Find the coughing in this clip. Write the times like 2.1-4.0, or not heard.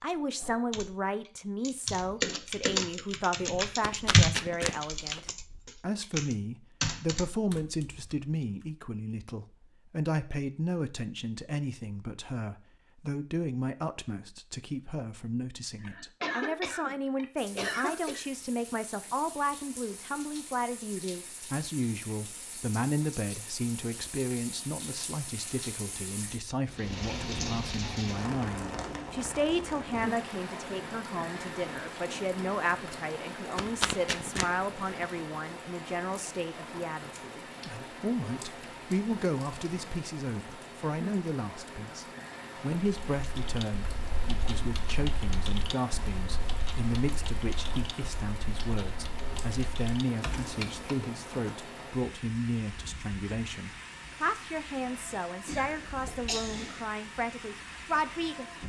15.8-18.2, 55.5-56.8.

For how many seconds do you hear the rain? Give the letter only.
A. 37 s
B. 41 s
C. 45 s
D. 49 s
B.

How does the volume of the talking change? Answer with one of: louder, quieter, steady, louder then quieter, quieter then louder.
steady.